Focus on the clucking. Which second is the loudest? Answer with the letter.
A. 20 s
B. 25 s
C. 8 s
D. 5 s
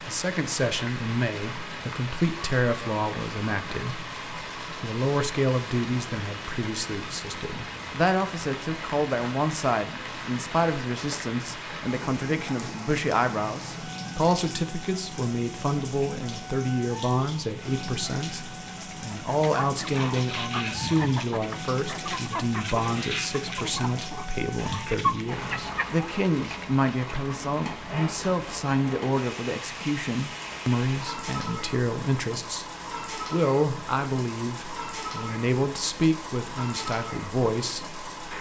B.